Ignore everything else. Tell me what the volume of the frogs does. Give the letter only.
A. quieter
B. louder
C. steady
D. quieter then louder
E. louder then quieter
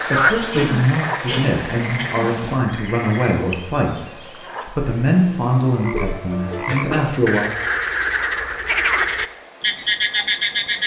D.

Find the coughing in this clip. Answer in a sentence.
You can hear the coughing from 0.5 to 2.3 s and from 5.9 to 7.0 s.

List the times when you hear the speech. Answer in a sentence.
You can hear the speech from 0.1 to 7.5 s.